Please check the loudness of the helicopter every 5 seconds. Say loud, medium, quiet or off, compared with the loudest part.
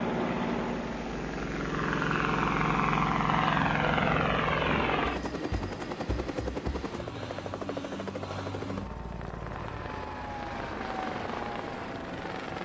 loud, medium, medium.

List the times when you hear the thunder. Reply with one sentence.
The thunder can be heard from 3.6 to 5.0 s.